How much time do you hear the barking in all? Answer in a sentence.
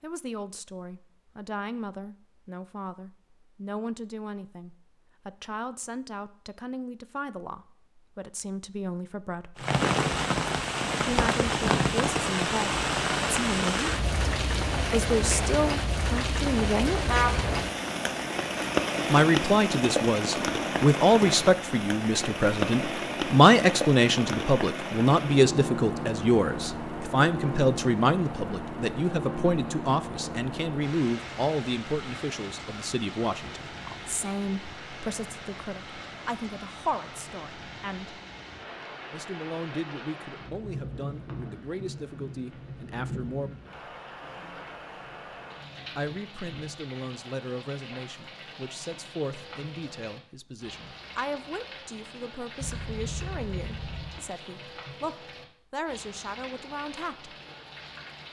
You can't hear the barking here.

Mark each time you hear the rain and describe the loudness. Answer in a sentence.
You can hear the rain from 9.6 to 58.2 s, getting quieter.